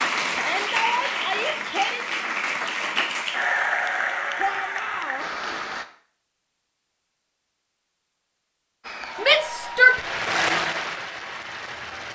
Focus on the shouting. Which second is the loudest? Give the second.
10 s.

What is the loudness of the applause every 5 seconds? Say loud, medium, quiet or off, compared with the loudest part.
loud, medium, loud.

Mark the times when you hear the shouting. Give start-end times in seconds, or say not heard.
0.3-2.0, 4.3-5.2, 9.2-10.0.